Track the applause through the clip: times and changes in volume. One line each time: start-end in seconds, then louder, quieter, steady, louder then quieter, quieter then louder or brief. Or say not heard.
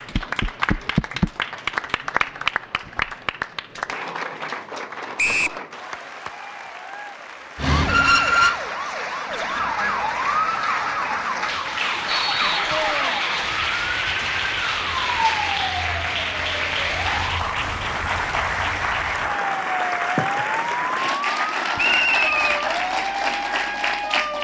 0.0-24.4 quieter then louder.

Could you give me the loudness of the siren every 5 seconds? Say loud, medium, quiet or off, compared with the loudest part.
off, loud, medium, medium, medium.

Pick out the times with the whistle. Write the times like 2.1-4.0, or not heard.
5.2-5.6, 12.2-13.2, 21.8-22.6.